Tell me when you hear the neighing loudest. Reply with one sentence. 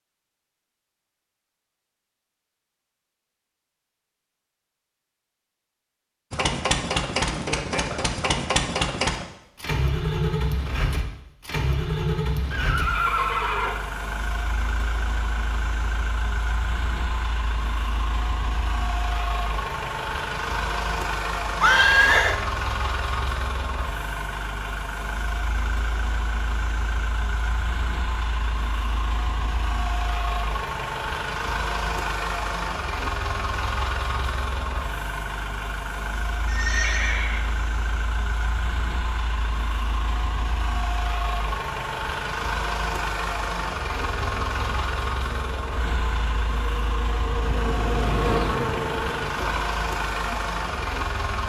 The loudest moment of the neighing is at 22 seconds.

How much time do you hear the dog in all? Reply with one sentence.
You can't hear the dog here.